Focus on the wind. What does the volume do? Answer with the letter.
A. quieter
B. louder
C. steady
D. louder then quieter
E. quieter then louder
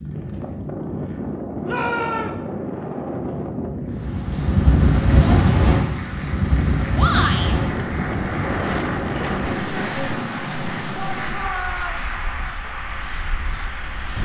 D.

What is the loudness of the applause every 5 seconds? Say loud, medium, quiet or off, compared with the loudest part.
off, loud, loud.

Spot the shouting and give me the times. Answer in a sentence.
You can hear the shouting from 1.6 to 2.4 s, from 7.0 to 7.5 s and from 10.9 to 12.2 s.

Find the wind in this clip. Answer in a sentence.
The wind can be heard from 0.0 to 14.2 s.